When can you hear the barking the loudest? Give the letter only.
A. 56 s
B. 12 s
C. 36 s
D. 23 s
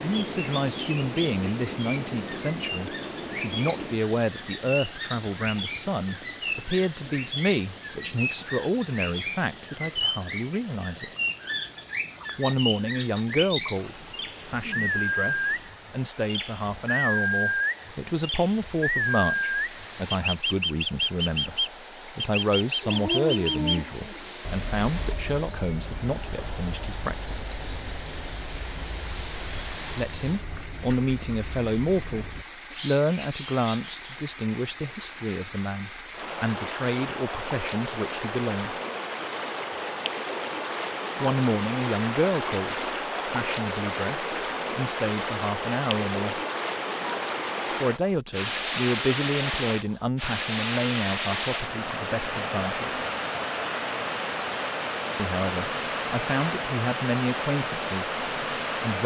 D.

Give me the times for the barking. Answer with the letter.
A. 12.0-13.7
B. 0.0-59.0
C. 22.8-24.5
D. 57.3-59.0
C.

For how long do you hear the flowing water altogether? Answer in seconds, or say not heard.
59 s.